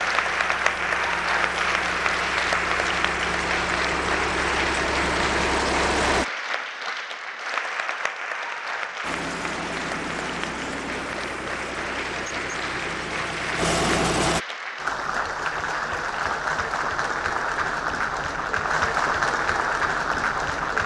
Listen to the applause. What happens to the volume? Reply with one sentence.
The volume of the applause goes down, then up.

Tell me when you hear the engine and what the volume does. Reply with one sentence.
You can hear the engine from 0.0 to 6.2 s, getting louder; and from 9.0 to 14.4 s, getting louder.